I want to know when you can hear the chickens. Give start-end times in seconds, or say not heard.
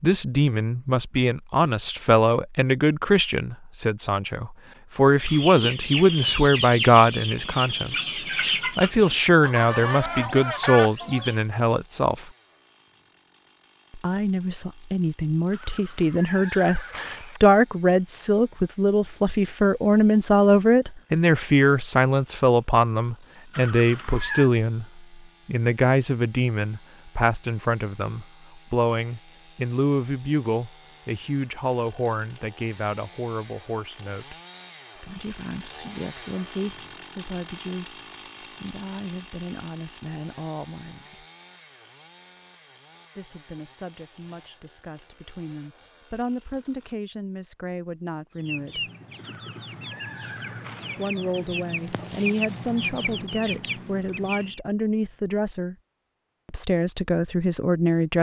5.2-11.4, 48.4-54.6.